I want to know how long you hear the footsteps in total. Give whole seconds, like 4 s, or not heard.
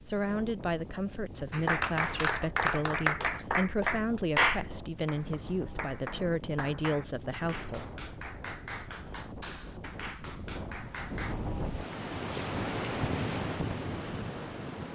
not heard.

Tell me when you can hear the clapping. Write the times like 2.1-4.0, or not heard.
1.5-11.3.